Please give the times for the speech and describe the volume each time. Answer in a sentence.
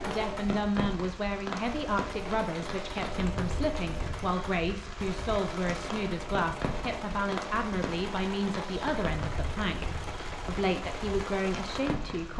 You can hear the speech from 0.1 to 12.3 s, at a steady volume.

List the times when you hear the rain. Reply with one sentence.
The rain can be heard from 0.0 to 12.3 s.